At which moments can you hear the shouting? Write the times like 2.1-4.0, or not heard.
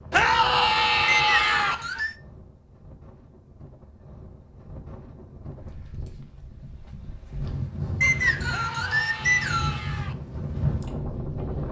0.1-1.8, 8.5-10.2.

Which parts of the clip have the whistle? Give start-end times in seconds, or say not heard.
1.1-2.1, 8.0-9.8.